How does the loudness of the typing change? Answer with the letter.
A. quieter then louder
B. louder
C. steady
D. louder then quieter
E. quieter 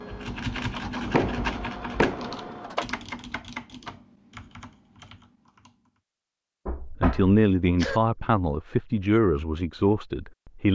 E.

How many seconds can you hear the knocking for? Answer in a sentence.
You can hear the knocking for 3 seconds altogether.